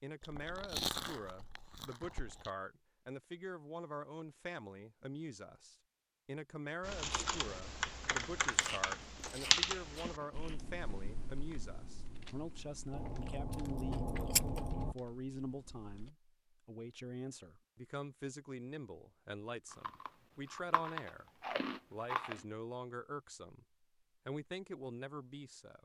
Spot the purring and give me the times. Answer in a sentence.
The purring can't be heard in this clip.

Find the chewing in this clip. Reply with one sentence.
The chewing can be heard from 0.2 to 2.5 s, from 8.4 to 10.8 s, from 12.9 to 14.9 s and from 19.7 to 22.4 s.